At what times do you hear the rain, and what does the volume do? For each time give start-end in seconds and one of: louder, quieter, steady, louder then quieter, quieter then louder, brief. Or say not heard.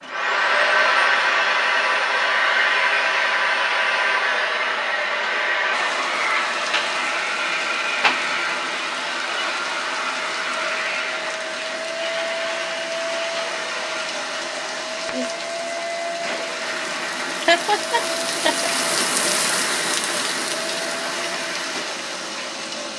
5.7-22.9 louder.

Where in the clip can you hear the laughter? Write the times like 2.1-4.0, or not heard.
17.4-18.7.